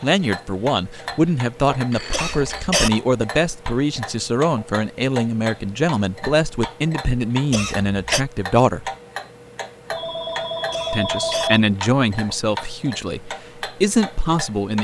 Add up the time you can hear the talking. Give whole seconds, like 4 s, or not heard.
13 s.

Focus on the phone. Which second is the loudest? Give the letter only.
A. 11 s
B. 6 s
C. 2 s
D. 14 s
A.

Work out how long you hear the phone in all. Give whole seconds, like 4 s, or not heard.
3 s.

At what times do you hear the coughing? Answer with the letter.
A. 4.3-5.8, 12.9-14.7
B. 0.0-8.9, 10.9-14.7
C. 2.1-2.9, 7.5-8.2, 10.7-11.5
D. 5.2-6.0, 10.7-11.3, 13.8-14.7
C.